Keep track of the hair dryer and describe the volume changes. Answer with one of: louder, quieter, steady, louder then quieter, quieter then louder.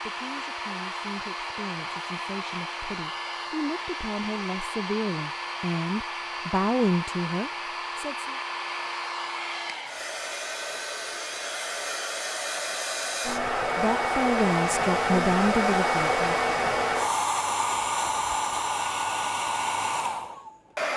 louder.